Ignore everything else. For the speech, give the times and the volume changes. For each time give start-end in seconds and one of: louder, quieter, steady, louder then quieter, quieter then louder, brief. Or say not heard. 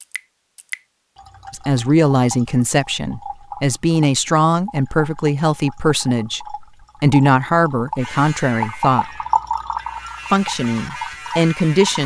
1.5-9.1 steady
10.3-12.0 brief.